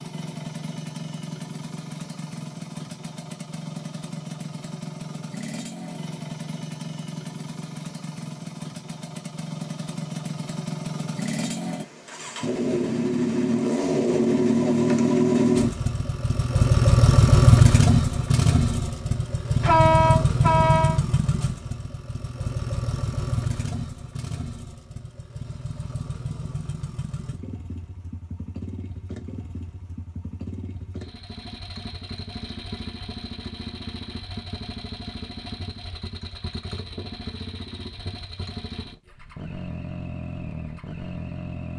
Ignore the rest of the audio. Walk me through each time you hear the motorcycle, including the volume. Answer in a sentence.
The motorcycle can be heard from 0.0 to 41.7 s, getting louder then quieter.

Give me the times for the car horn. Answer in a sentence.
The car horn can be heard from 19.6 to 21.0 s.